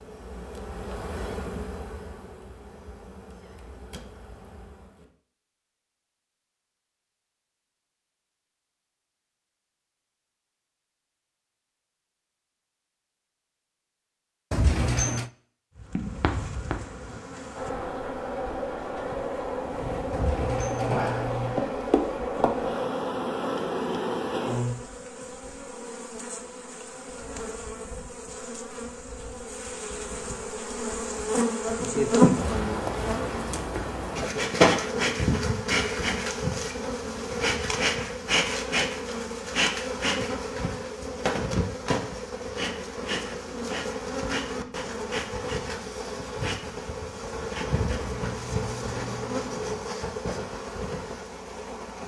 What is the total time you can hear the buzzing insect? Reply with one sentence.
You can hear the buzzing insect for 41 seconds altogether.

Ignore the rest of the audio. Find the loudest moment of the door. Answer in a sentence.
The loudest moment of the door is at 15 seconds.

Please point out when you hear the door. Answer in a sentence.
You can hear the door from 14.5 to 15.3 s, from 20.1 to 21.6 s and from 47.8 to 49.8 s.